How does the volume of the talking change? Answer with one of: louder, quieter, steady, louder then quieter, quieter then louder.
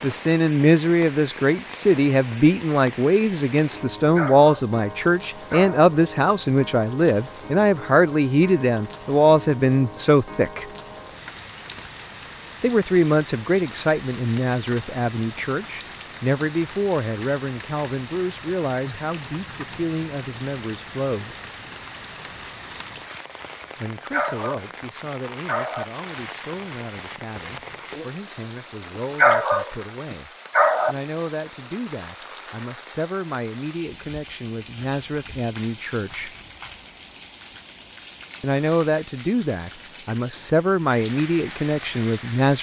quieter then louder.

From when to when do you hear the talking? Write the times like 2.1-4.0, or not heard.
0.0-10.7, 12.6-21.4, 23.8-36.3, 38.4-42.5.